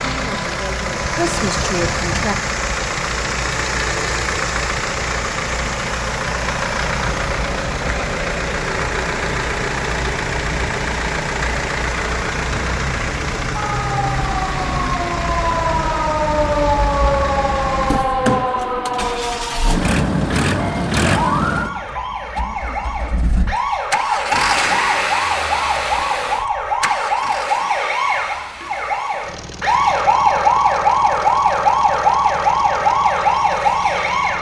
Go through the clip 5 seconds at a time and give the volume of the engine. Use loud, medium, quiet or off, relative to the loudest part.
loud, loud, loud, loud, loud, medium, quiet.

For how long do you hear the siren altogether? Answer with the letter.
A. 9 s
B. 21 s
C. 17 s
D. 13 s
B.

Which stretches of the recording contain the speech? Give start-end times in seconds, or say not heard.
0.0-2.4.